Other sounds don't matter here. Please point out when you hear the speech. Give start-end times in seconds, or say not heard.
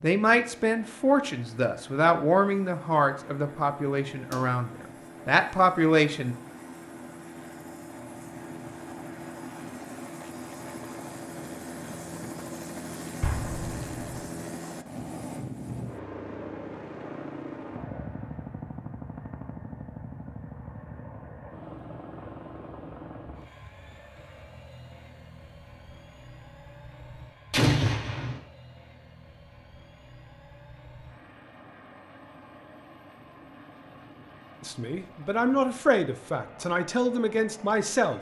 0.0-6.3, 34.6-38.1.